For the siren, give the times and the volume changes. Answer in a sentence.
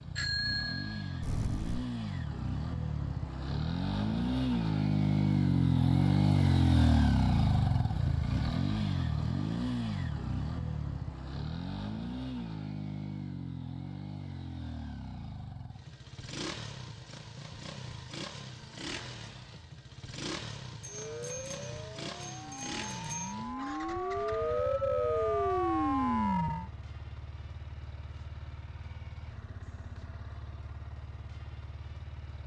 You can hear the siren from 20.9 to 26.7 s, getting louder.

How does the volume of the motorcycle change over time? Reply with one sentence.
The loudness of the motorcycle goes down.